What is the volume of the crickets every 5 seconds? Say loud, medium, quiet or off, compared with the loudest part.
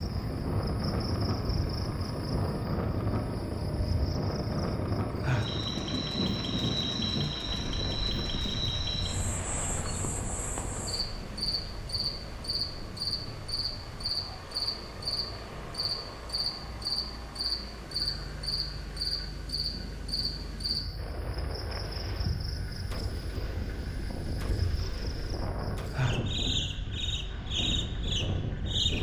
medium, loud, loud, loud, medium, loud.